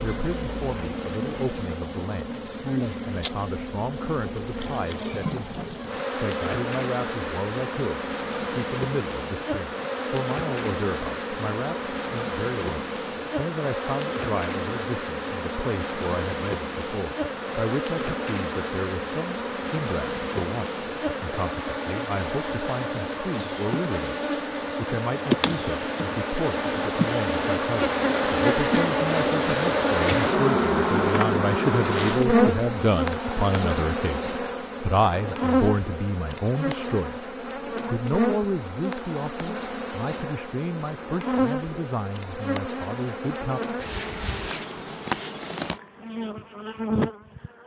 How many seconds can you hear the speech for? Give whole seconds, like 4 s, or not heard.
43 s.